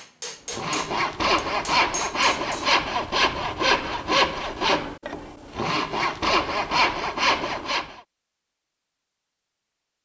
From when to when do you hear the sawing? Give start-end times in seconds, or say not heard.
0.5-8.0.